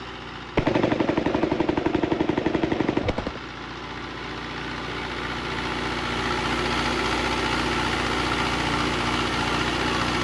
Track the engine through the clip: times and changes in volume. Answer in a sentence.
You can hear the engine from 0.0 to 10.1 s, getting louder.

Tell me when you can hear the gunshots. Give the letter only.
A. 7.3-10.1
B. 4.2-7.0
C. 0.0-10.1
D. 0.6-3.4
D.